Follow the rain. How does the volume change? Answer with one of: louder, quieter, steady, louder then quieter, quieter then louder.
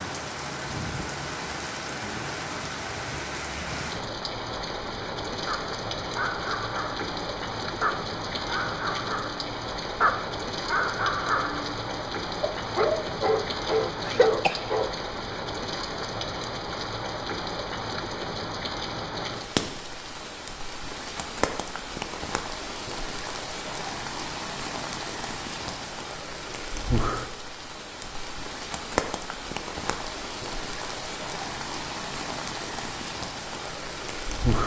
steady.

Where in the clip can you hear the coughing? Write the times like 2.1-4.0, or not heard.
14.1-14.6.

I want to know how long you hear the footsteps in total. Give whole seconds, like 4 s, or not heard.
not heard.